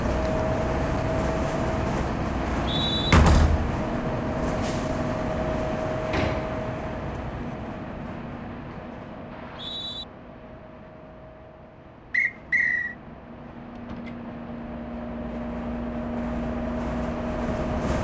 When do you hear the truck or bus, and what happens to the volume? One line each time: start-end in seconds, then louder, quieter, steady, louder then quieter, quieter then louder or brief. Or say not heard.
0.0-17.9 quieter then louder.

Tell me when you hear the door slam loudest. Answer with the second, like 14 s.
3 s.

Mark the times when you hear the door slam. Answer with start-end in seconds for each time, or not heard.
3.0-3.7, 6.1-6.6, 13.8-14.2.